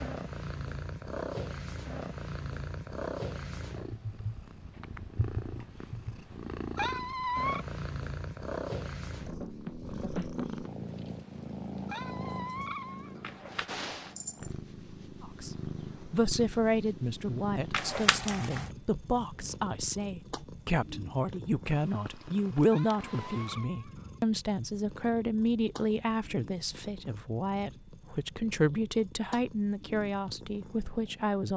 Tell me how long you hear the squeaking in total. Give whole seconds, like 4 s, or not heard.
4 s.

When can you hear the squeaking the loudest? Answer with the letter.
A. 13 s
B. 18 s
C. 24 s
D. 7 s
D.